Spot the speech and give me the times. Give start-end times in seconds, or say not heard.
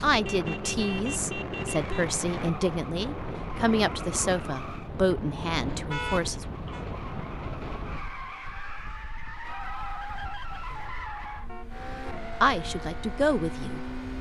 0.0-6.5, 12.4-13.8.